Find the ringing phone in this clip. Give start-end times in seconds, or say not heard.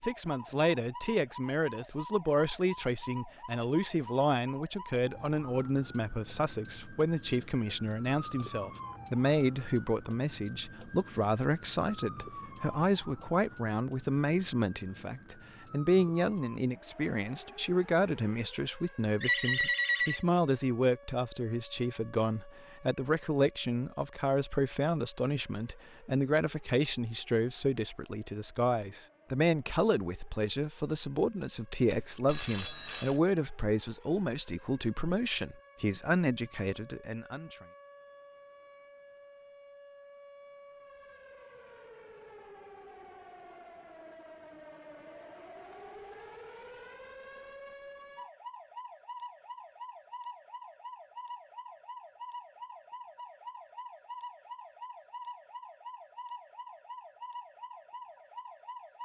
19.2-20.2, 31.9-33.2.